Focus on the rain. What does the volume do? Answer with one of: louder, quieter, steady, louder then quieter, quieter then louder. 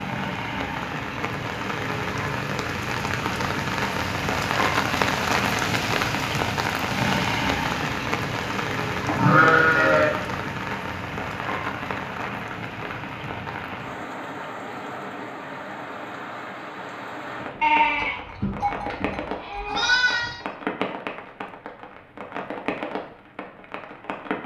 quieter.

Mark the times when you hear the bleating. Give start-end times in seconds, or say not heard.
9.1-10.1, 17.6-20.4.